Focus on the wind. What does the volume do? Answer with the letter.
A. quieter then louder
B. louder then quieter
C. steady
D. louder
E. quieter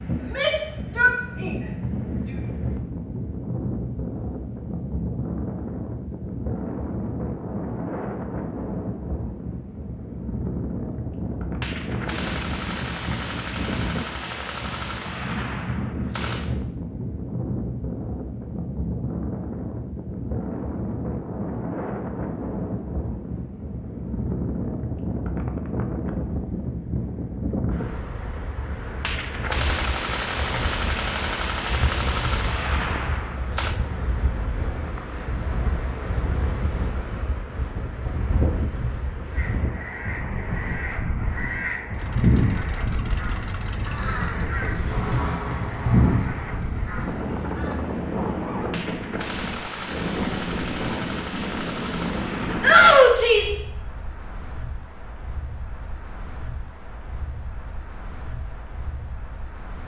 C.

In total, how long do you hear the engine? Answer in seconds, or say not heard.
7 s.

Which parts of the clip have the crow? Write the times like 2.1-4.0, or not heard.
39.3-47.8.